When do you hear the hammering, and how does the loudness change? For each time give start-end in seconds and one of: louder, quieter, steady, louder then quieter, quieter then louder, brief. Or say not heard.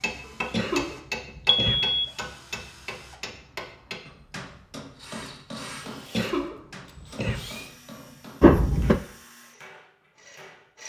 0.0-10.8 quieter.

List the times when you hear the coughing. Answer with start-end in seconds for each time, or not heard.
0.2-1.9, 6.1-7.5.